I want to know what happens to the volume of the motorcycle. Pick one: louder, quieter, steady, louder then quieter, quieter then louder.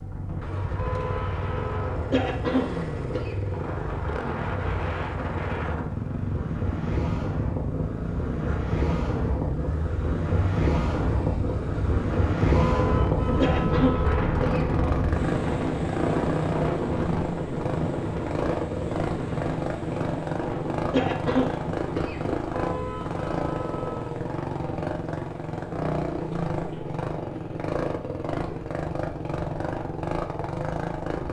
steady.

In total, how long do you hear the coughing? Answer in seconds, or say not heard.
4 s.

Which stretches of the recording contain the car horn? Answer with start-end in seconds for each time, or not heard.
0.8-2.0, 12.6-14.1, 22.5-24.0.